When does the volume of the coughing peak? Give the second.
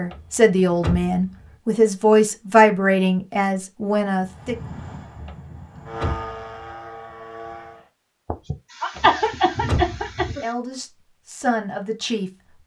9 s.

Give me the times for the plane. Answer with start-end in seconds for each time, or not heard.
4.2-7.9.